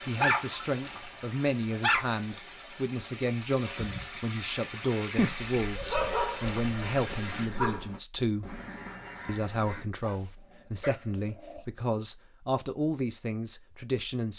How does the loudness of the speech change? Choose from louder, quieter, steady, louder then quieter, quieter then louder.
steady.